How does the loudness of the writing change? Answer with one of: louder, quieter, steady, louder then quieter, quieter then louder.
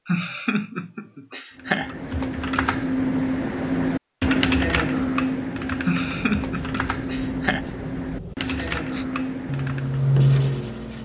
louder.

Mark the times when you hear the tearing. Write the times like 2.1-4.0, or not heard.
not heard.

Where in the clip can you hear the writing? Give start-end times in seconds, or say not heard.
6.0-11.0.